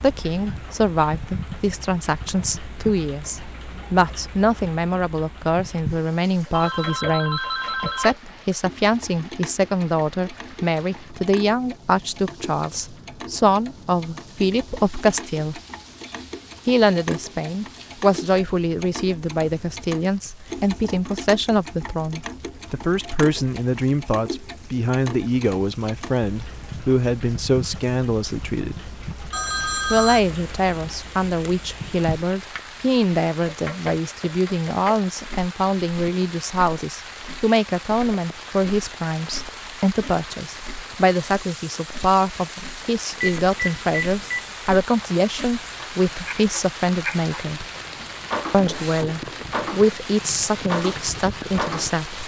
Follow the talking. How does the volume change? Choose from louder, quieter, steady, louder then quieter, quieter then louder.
steady.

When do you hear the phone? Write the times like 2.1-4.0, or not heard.
6.5-8.2, 29.3-30.2, 43.2-44.5.